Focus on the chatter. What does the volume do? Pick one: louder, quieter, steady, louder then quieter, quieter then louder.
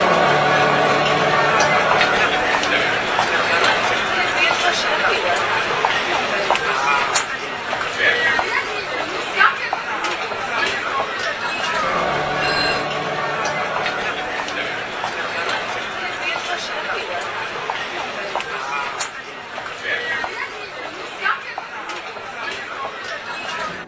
quieter.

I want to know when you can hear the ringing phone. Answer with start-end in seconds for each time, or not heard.
11.8-12.8.